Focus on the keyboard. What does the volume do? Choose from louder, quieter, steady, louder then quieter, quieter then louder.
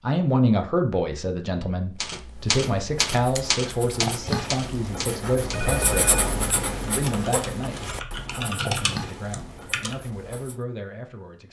quieter then louder.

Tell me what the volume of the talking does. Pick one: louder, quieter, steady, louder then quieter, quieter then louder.
quieter.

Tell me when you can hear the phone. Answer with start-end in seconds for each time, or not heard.
5.5-6.3.